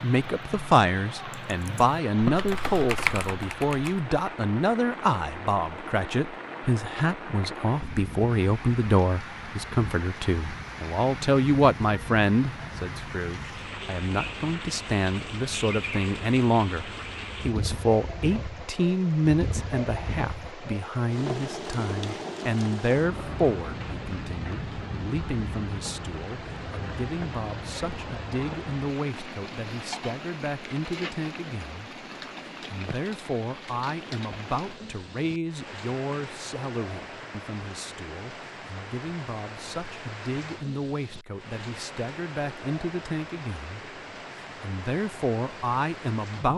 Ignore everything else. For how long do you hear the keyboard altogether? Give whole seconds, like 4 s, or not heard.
4 s.